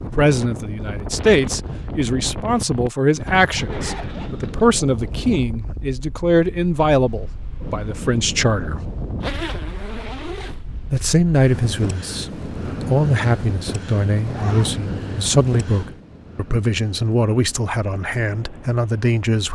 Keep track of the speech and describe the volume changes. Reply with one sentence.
The volume of the speech stays about the same.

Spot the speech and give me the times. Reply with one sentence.
You can hear the speech from 0.0 to 8.8 s and from 10.9 to 19.5 s.